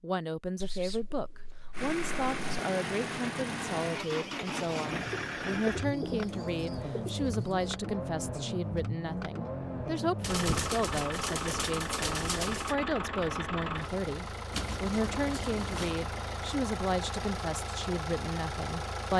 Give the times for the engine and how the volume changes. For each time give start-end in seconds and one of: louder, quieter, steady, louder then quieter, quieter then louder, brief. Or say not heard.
1.7-19.1 steady.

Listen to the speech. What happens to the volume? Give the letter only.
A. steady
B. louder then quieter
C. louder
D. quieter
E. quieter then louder
A.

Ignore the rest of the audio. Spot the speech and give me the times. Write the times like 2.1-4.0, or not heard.
0.0-19.1.